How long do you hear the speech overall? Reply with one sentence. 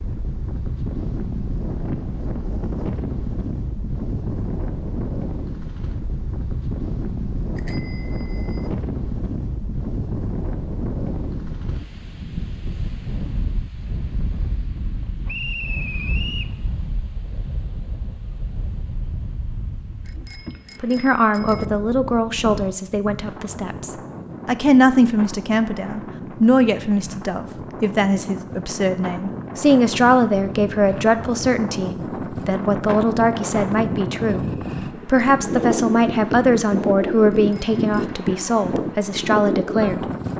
The speech can be heard for 19 seconds in total.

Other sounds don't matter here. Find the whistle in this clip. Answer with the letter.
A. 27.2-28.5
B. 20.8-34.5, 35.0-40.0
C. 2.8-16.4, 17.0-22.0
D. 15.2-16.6
D.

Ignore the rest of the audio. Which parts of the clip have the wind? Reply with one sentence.
The wind can be heard from 0.0 to 40.3 s.